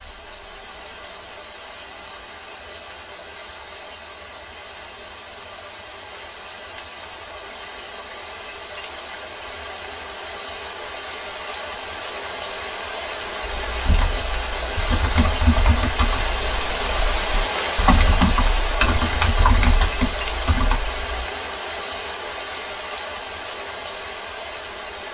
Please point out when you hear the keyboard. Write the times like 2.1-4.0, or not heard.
13.6-21.2.